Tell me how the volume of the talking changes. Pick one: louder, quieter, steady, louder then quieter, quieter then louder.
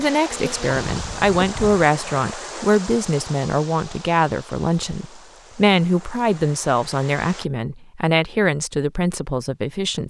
steady.